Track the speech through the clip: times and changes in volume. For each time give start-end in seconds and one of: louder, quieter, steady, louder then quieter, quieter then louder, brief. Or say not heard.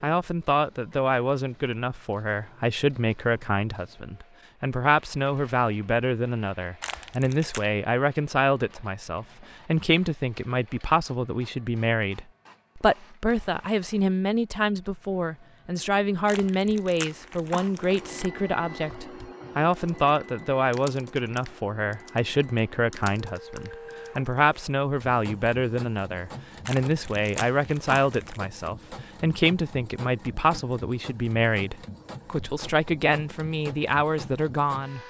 0.0-35.0 steady.